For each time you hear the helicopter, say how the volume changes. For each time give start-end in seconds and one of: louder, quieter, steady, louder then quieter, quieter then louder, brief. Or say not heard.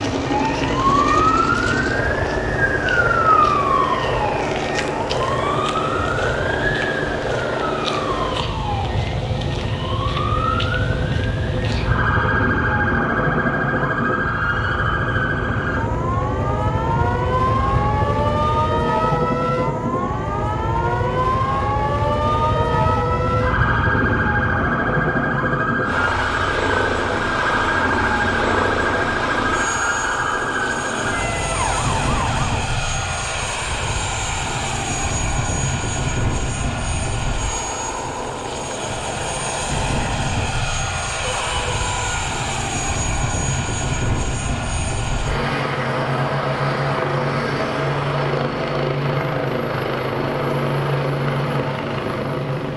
0.0-52.7 steady.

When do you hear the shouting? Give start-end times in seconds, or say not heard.
41.2-42.2.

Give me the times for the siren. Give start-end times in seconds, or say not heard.
0.0-32.6.